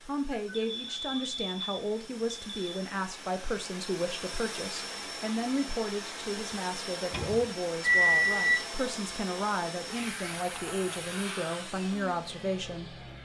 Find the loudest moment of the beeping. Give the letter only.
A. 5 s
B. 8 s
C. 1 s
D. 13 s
B.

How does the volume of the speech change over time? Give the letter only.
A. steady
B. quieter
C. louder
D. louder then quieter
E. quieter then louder
A.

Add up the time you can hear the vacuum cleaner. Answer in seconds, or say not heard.
13 s.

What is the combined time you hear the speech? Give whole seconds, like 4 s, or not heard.
13 s.